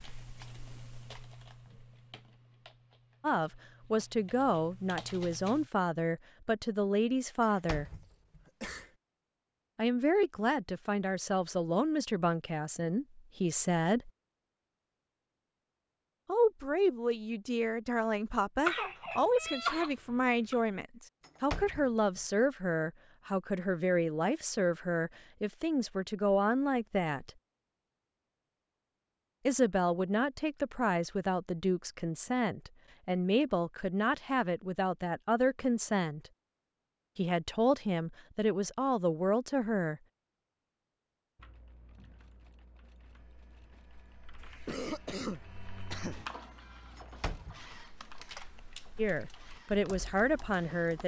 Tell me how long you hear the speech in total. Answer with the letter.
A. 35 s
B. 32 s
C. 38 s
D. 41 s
B.